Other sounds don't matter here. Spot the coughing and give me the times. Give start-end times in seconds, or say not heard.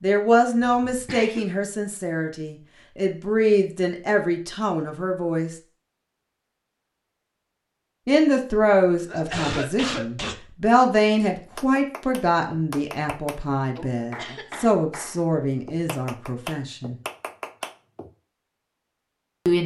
0.6-1.4, 9.1-10.5, 13.8-14.8.